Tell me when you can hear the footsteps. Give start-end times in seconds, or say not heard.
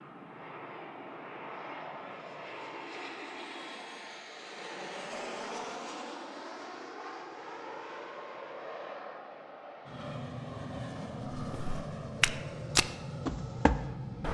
11.4-14.2.